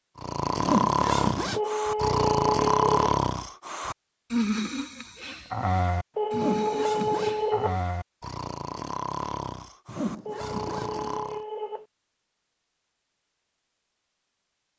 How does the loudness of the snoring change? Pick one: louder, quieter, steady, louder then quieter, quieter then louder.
quieter.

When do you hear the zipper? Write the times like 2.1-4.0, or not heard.
0.6-1.6, 6.3-7.5, 9.8-11.2.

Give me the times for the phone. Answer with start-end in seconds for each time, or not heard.
1.6-3.1, 6.2-7.8, 10.2-11.8.